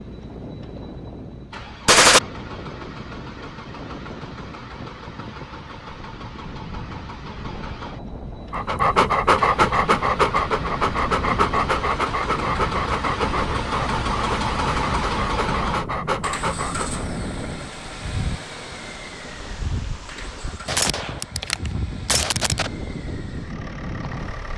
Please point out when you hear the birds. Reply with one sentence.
The birds can't be heard in this clip.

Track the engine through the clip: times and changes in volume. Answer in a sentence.
You can hear the engine from 0.0 to 24.5 s, getting louder then quieter.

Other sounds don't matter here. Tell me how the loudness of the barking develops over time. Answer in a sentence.
The loudness of the barking goes down.